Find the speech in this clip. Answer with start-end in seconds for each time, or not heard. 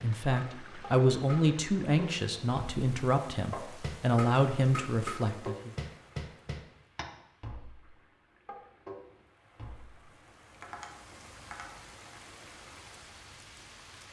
0.0-5.7.